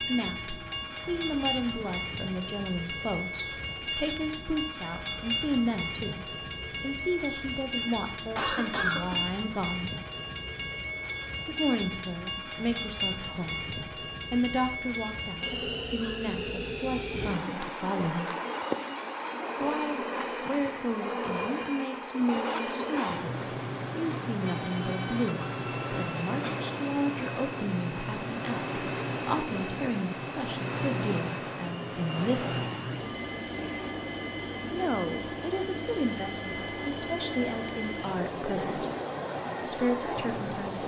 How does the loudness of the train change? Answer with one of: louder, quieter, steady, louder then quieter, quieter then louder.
steady.